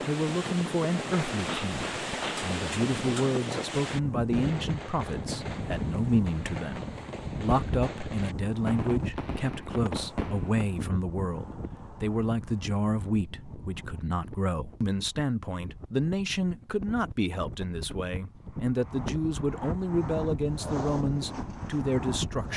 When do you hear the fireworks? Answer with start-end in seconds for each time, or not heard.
0.9-10.7.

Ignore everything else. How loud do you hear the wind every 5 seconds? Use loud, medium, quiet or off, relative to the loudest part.
loud, loud, medium, medium, loud.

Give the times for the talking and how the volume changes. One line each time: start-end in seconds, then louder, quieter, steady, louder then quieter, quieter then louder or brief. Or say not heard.
0.1-22.5 steady.